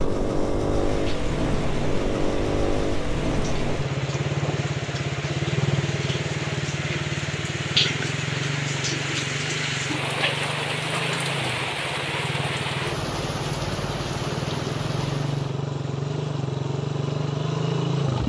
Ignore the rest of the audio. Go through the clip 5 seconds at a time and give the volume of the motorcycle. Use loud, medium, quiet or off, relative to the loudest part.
loud, loud, medium, loud.